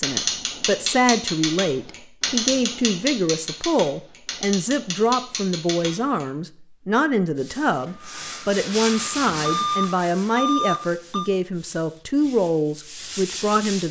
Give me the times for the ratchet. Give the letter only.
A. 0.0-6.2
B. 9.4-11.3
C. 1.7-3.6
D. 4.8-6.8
A.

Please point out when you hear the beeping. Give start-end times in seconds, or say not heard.
9.4-11.3.